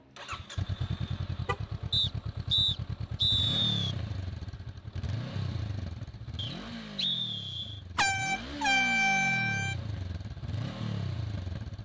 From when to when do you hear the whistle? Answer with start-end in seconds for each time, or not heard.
1.9-4.0, 6.3-7.8.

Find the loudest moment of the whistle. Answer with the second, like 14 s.
3 s.